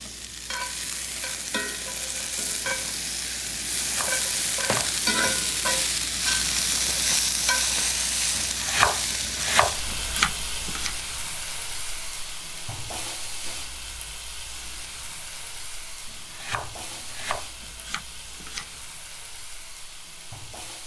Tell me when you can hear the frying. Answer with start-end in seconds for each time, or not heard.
0.0-20.8.